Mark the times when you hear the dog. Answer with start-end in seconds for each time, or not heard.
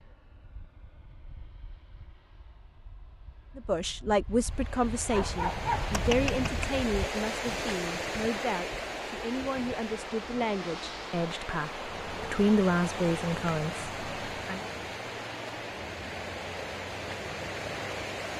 5.1-6.7.